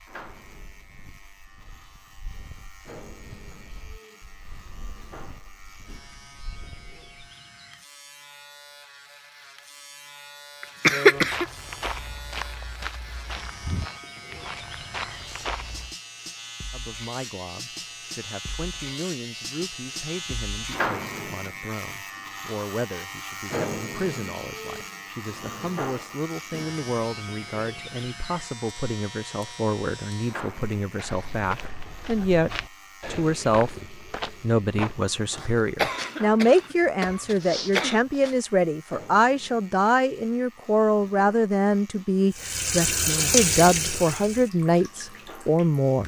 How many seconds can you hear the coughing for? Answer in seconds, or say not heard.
3 s.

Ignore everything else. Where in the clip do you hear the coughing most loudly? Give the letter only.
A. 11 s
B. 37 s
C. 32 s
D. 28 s
A.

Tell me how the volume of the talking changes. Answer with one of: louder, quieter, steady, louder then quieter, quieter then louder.
louder.